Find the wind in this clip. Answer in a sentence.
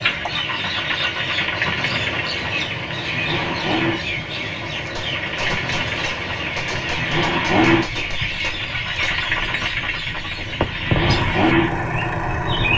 You can hear the wind from 0.0 to 12.7 s.